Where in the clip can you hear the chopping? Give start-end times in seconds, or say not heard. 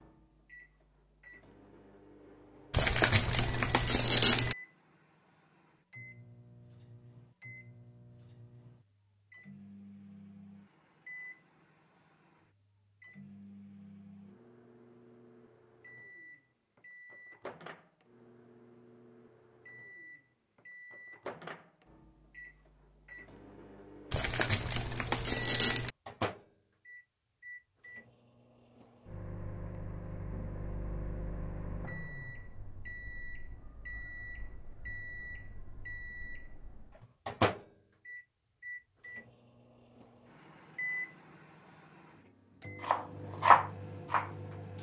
42.8-44.7.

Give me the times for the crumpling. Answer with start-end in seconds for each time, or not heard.
2.7-4.5, 24.1-25.9.